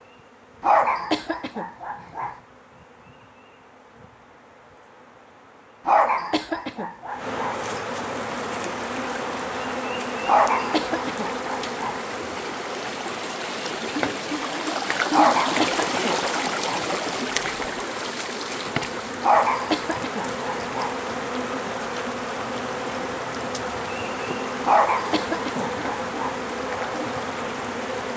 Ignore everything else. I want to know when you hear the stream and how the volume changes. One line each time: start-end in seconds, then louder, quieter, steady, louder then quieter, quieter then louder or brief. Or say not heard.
8.3-28.1 louder then quieter.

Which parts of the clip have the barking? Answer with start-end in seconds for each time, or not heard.
0.6-2.4, 5.8-7.5, 10.2-12.0, 15.1-16.9, 19.2-20.9, 24.6-26.4.